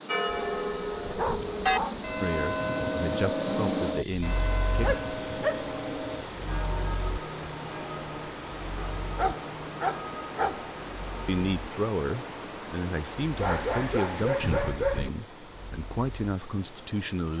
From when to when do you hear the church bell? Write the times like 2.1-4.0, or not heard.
0.1-11.4.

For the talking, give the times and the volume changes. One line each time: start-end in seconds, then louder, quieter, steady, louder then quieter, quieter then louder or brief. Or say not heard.
2.2-4.9 brief
11.2-17.3 quieter then louder.